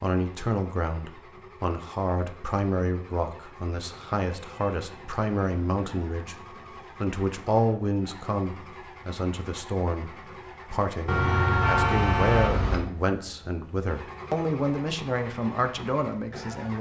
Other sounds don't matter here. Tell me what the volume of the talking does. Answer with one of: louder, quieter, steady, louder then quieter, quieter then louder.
steady.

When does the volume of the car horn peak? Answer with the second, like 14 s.
12 s.